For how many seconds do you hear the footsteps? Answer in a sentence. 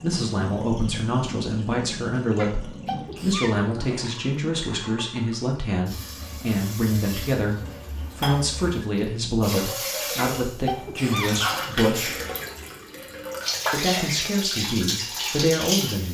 The footsteps can't be heard in this clip.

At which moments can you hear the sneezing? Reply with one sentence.
The sneezing can be heard from 2.4 to 3.6 s and from 10.2 to 11.4 s.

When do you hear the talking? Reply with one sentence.
The talking can be heard from 0.0 to 7.5 s, from 8.2 to 12.1 s and from 13.7 to 16.0 s.